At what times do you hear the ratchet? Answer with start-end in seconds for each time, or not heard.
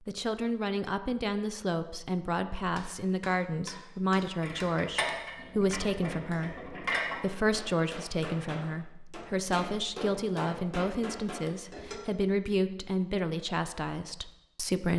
4.4-7.2.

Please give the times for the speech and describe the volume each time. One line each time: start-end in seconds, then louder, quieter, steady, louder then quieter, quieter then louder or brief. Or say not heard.
0.1-14.9 steady.